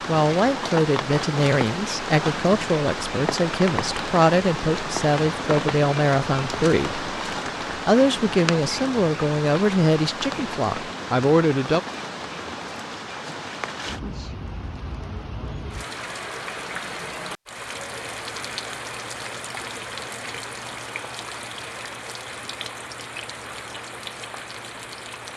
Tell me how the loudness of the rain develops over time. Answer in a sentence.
The volume of the rain goes down.